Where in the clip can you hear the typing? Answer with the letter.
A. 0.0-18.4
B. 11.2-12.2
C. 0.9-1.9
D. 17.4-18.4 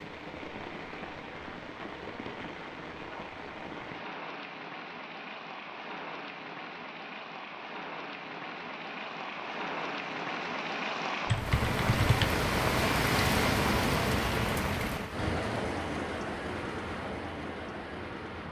B.